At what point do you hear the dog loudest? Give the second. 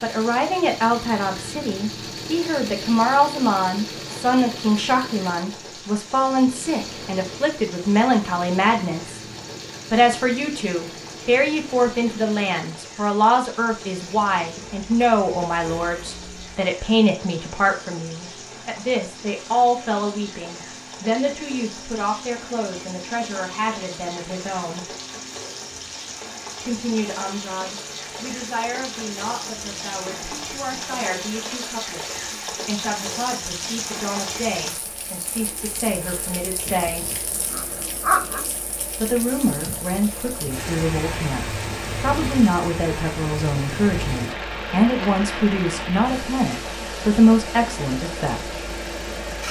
38 s.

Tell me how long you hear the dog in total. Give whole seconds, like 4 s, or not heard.
2 s.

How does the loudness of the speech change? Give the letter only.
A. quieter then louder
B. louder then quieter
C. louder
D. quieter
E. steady
A.